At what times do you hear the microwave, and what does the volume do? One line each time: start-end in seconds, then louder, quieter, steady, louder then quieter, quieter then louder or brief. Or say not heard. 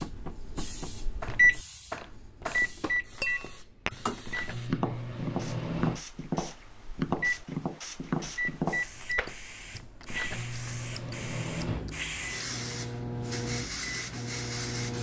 0.0-14.9 quieter.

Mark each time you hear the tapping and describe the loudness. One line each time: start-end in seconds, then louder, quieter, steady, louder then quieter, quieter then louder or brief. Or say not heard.
0.0-9.3 louder.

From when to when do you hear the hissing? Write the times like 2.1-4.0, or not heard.
0.0-14.9.